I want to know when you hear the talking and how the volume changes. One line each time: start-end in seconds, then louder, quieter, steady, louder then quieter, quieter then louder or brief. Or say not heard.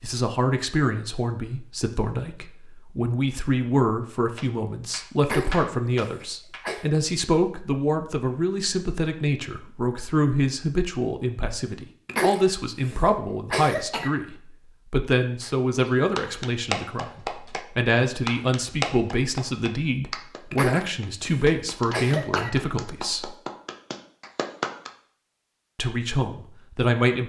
0.0-23.4 steady
25.8-27.2 brief.